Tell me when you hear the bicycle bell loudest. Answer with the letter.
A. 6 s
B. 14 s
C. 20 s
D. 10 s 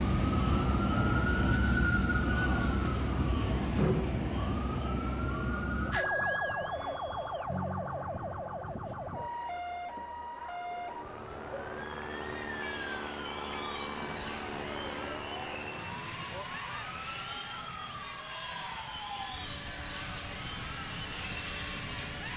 A.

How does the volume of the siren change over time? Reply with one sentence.
The volume of the siren goes down.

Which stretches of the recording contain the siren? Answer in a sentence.
The siren can be heard from 0.0 to 22.3 s.